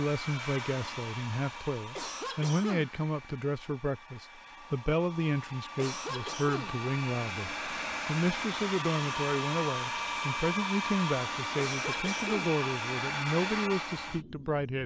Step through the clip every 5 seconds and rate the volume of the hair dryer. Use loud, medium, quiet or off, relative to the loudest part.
medium, loud, loud.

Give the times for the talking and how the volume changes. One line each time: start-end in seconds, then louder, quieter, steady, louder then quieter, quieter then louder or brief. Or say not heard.
0.0-14.8 steady.